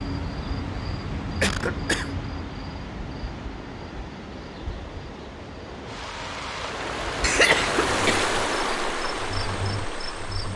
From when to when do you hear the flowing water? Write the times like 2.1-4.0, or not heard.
0.0-10.5.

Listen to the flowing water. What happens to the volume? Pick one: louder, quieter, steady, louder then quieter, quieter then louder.
louder.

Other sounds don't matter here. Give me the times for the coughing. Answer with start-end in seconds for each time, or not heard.
1.4-2.1, 7.2-8.2.